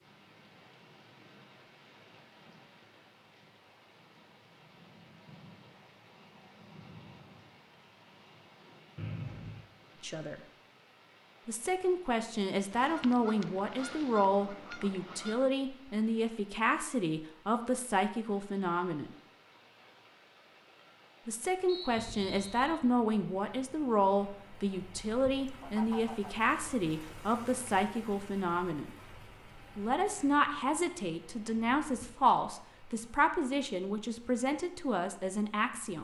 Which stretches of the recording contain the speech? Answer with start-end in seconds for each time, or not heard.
10.0-10.4, 11.4-19.1, 21.2-28.9, 29.8-36.0.